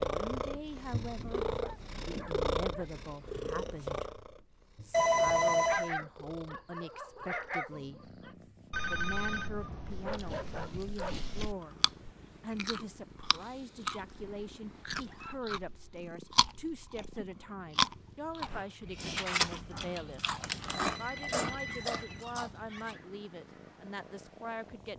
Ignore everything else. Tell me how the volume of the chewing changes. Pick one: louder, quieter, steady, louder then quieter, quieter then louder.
louder then quieter.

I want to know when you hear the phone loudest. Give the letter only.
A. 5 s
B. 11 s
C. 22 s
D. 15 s
A.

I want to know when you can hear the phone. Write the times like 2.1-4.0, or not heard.
4.9-6.0, 8.7-10.7, 20.7-22.2.